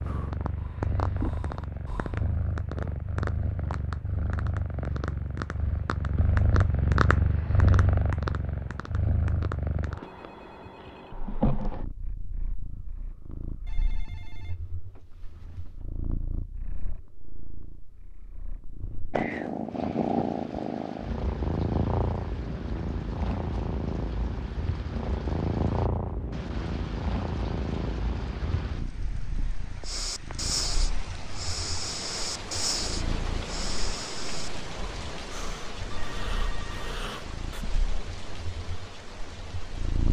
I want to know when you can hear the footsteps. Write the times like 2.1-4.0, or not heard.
not heard.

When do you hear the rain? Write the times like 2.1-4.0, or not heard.
19.6-40.0.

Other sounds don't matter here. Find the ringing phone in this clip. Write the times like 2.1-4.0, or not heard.
10.0-11.2, 13.7-15.8, 35.9-36.9.